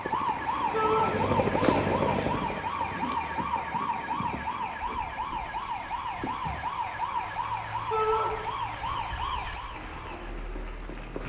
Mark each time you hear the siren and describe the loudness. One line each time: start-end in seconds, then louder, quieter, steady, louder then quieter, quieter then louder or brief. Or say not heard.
0.0-11.2 quieter.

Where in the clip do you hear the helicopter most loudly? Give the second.
2 s.